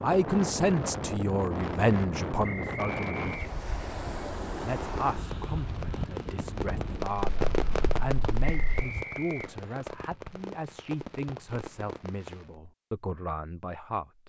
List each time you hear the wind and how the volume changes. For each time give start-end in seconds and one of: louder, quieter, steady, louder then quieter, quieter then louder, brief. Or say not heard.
0.0-9.1 quieter.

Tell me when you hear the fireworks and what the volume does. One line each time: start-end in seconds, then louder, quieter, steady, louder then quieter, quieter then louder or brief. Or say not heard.
4.5-12.6 louder then quieter.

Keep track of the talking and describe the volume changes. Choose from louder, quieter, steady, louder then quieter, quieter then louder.
quieter.